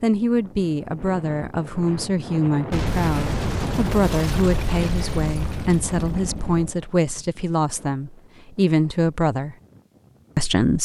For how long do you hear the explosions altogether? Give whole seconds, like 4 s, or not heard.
4 s.